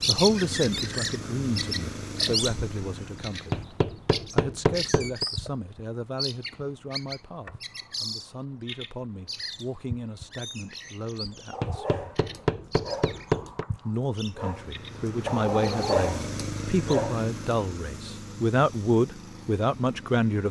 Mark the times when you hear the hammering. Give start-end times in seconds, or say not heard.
3.5-5.2, 11.6-13.7.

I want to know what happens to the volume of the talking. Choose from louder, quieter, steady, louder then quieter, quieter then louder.
quieter then louder.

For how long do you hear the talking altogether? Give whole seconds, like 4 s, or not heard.
18 s.